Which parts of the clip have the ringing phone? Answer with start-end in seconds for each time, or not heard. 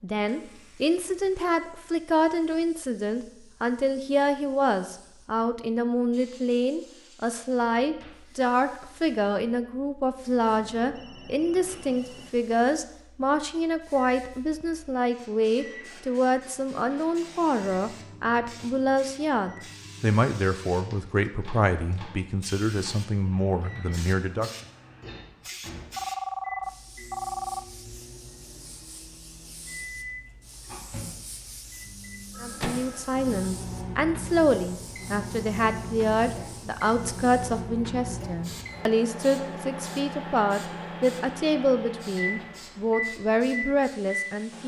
10.4-12.3, 25.9-27.6, 32.3-33.5.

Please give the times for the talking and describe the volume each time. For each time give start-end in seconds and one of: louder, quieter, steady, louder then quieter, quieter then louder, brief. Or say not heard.
0.0-24.6 steady
32.4-44.6 steady.